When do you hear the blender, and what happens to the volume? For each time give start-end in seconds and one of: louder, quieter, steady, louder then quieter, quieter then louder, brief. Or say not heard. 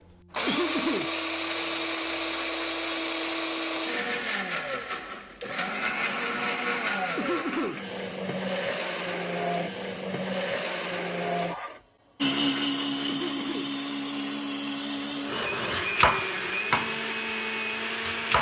0.1-18.3 steady.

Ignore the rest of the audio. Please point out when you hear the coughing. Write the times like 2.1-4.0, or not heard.
0.5-1.1, 7.2-7.8, 13.1-13.8.